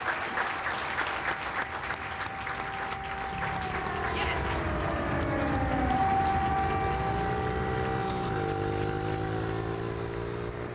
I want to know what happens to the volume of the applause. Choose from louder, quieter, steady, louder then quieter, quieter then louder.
quieter.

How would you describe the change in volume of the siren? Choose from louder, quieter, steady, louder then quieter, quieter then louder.
louder then quieter.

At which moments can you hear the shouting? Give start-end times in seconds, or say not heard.
4.0-4.5.